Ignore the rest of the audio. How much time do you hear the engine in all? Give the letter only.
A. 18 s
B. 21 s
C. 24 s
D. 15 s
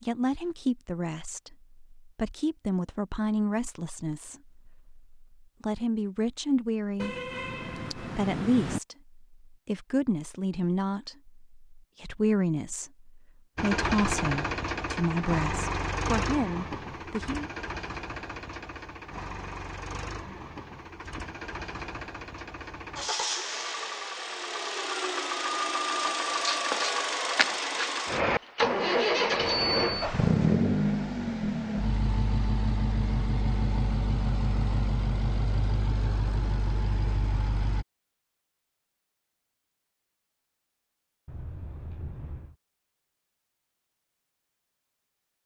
C.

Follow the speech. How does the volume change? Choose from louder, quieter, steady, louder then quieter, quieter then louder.
steady.